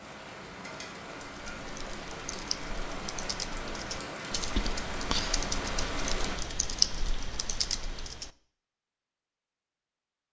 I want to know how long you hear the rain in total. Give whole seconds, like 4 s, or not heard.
6 s.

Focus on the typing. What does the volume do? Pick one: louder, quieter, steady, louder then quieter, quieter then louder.
louder.